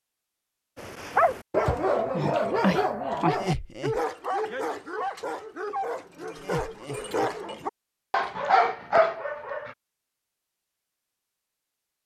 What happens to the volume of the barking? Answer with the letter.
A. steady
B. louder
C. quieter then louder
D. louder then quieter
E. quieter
C.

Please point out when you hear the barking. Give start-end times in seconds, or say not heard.
0.8-9.8.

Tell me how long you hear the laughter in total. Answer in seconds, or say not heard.
2 s.